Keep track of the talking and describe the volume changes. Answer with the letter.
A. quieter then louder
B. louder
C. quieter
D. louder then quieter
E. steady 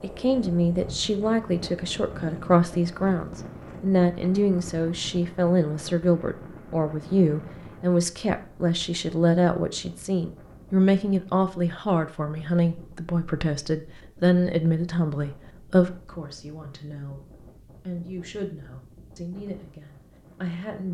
C.